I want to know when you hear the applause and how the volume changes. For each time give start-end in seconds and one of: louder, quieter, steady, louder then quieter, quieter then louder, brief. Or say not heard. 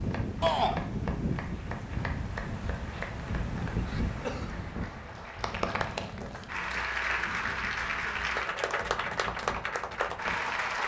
0.0-10.8 louder.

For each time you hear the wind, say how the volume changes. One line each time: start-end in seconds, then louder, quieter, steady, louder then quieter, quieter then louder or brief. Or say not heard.
0.0-10.8 quieter.